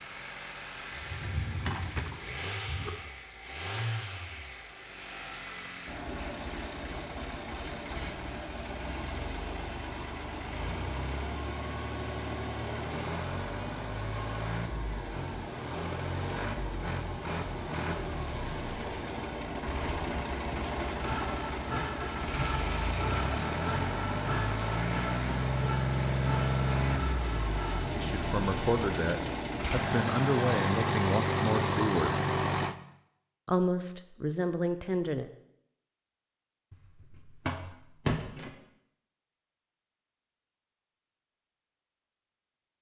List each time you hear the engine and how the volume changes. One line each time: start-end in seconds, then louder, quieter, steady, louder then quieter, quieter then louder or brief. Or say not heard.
0.0-32.8 louder.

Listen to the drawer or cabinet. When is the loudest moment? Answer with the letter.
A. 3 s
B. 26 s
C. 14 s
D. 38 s
D.